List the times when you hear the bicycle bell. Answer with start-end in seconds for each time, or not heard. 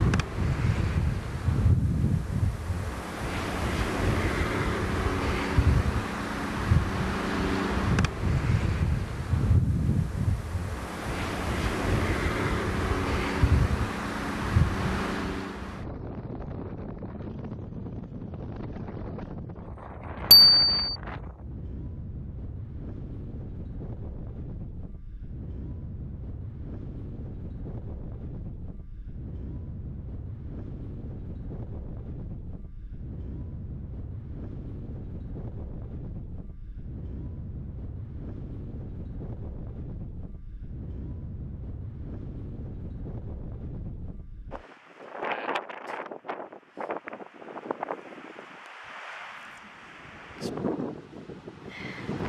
20.3-20.9.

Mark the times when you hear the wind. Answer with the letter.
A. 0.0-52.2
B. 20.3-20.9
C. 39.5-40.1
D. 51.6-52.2
A.